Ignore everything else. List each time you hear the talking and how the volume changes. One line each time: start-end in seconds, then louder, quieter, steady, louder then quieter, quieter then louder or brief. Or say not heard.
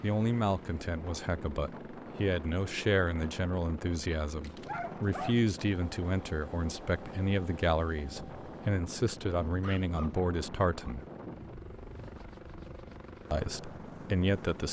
0.0-11.1 steady
13.3-14.6 brief.